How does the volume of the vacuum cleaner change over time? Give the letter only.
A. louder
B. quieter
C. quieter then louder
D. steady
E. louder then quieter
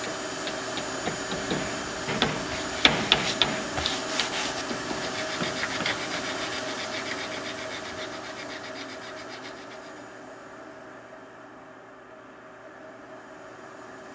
B.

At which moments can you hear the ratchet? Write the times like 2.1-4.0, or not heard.
not heard.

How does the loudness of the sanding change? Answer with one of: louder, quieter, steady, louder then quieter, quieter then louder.
quieter.